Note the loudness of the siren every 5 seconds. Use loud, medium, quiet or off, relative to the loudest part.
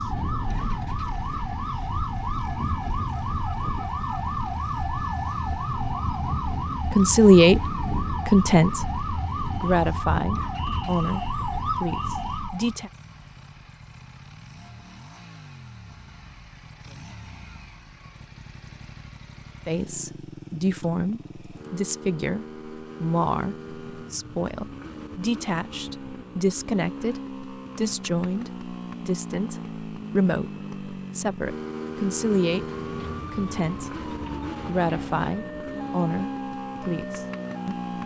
loud, loud, loud, off, off, off, medium, medium.